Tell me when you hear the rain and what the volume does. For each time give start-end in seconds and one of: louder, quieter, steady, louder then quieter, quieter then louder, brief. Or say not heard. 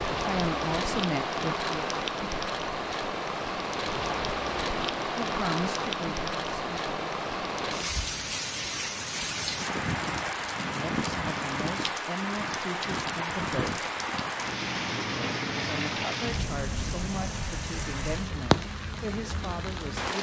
0.0-20.1 steady.